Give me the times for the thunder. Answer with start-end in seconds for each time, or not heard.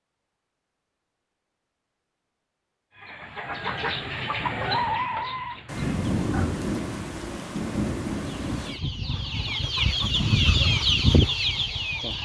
5.7-8.8.